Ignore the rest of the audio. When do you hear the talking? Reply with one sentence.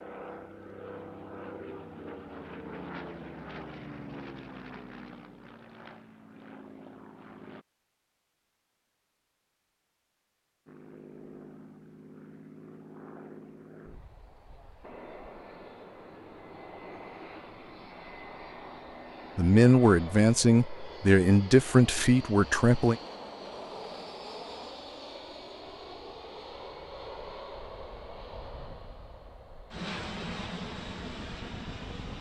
The talking can be heard from 19.4 to 23.0 s.